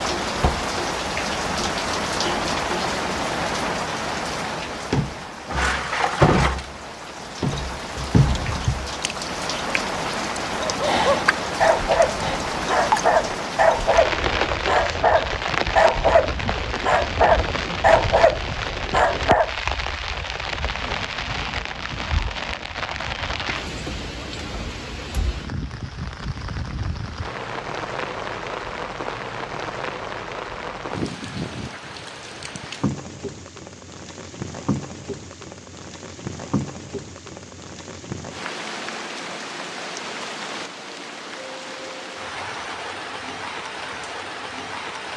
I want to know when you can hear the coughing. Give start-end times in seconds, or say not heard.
not heard.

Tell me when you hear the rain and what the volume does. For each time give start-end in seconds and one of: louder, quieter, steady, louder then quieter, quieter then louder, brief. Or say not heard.
0.0-45.1 quieter.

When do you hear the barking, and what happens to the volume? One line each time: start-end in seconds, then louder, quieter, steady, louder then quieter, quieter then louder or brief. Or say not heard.
10.6-19.5 steady.